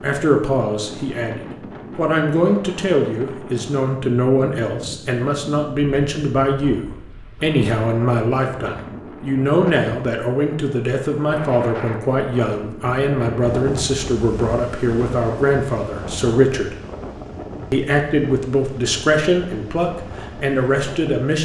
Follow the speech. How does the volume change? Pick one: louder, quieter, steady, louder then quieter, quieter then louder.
steady.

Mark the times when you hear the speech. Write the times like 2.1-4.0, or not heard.
0.0-16.8, 17.7-21.4.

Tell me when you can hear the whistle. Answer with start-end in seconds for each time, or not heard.
not heard.